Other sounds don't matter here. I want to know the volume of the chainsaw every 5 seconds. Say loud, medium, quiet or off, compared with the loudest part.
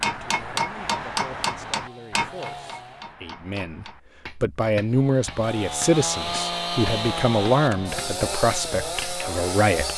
quiet, loud.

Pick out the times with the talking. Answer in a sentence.
You can hear the talking from 0.0 to 9.9 s.